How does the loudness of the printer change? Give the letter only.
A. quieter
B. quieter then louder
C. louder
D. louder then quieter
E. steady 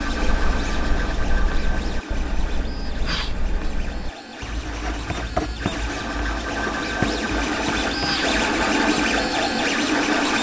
B.